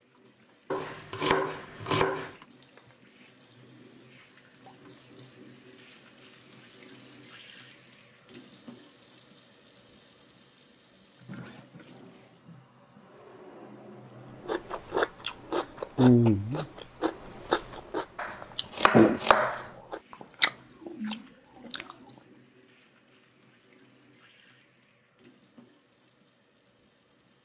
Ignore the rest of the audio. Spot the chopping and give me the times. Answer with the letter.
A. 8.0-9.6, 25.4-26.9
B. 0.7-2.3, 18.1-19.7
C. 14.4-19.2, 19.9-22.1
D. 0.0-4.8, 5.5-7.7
B.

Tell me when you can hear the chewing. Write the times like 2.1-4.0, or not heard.
14.4-19.2, 19.9-22.1.